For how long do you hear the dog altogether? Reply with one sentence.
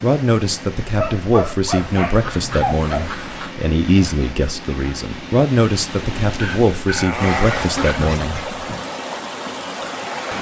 The dog can be heard for 4 seconds in total.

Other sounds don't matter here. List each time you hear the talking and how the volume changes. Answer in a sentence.
The talking can be heard from 0.0 to 8.5 s, at a steady volume.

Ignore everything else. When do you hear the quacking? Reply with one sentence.
You can hear the quacking from 1.7 to 3.6 s and from 7.2 to 8.8 s.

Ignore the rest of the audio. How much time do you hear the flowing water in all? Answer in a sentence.
The flowing water can be heard for 10 seconds in total.